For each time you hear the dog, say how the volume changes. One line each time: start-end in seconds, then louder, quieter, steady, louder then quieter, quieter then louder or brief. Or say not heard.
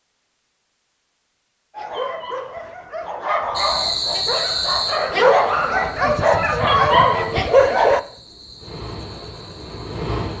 1.8-8.0 louder.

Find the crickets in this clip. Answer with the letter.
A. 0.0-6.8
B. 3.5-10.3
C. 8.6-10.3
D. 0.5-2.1
B.